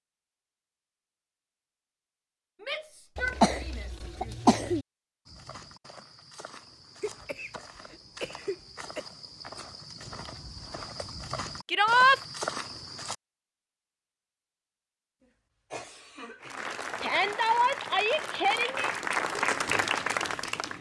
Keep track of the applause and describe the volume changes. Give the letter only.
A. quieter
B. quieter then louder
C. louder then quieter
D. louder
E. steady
D.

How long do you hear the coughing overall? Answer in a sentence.
You can hear the coughing for 5 seconds altogether.